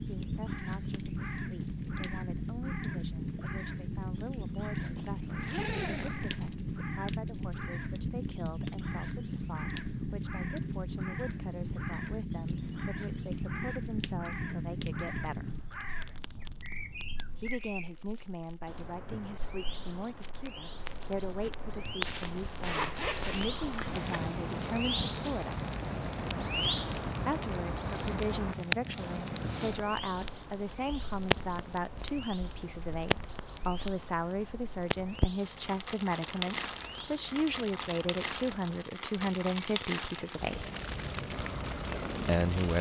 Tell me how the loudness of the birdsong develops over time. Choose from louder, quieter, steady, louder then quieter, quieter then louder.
louder then quieter.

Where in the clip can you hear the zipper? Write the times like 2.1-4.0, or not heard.
5.0-6.5, 22.6-24.2.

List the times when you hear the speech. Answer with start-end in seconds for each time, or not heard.
0.1-15.6, 17.4-25.6, 27.2-40.6, 42.2-42.7.